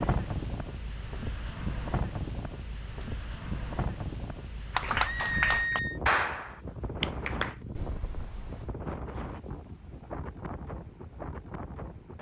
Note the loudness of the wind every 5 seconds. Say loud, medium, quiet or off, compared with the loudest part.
loud, loud, medium.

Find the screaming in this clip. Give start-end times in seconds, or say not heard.
5.0-6.0.